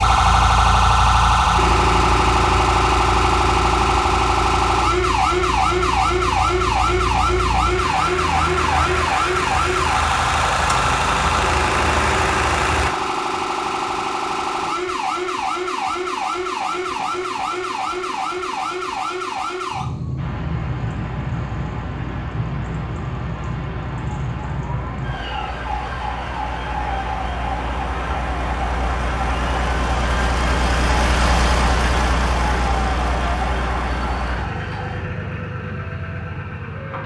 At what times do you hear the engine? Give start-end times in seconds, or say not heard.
0.0-12.9, 20.1-37.0.